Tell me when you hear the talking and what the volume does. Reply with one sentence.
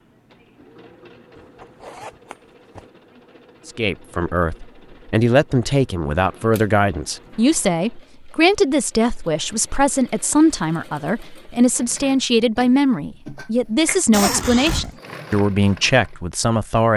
The talking can be heard from 3.6 to 16.9 s, at a steady volume.